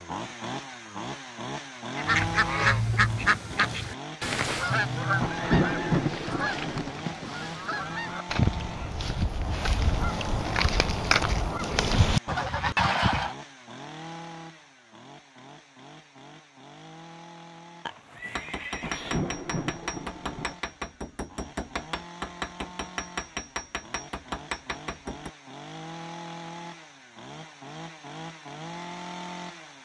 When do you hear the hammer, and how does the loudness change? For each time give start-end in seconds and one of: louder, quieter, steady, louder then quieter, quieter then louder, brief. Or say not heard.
18.4-25.3 steady.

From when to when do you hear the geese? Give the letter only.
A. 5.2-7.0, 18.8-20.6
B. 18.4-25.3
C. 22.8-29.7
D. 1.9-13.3
D.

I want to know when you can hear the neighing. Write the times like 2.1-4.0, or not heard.
5.3-5.8, 17.9-19.2.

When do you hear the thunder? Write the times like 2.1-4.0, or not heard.
5.2-7.0, 18.8-20.6.